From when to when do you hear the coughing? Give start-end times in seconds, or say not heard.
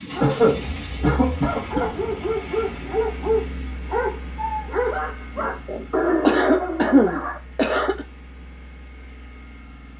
0.2-1.9, 5.3-8.1.